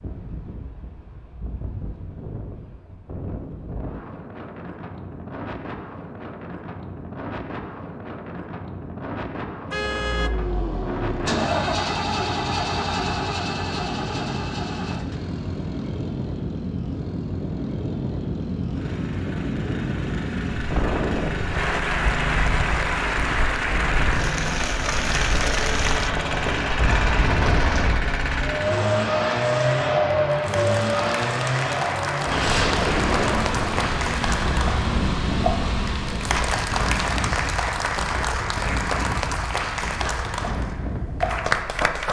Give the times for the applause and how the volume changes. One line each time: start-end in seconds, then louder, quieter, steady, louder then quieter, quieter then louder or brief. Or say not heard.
21.5-42.0 steady.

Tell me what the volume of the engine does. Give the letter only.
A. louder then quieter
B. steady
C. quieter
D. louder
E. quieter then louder
E.